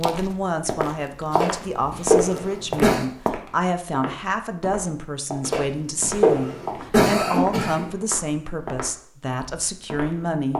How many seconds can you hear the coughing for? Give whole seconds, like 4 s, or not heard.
4 s.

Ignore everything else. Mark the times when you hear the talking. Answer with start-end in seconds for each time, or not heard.
0.0-10.5.